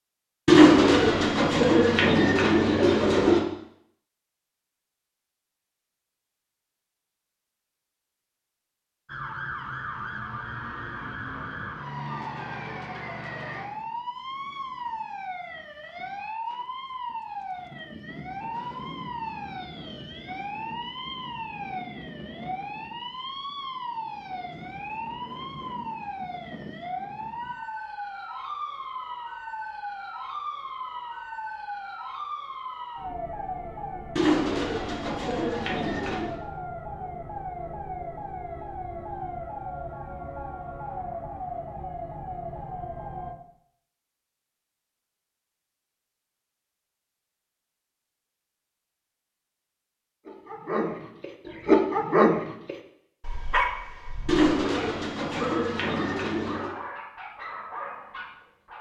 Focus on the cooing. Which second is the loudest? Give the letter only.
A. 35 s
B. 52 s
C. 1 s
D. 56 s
C.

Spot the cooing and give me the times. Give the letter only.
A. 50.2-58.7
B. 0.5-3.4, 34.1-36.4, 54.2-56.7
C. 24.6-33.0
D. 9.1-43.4
B.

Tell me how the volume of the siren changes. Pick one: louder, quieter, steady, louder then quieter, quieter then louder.
steady.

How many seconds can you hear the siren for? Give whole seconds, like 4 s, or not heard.
34 s.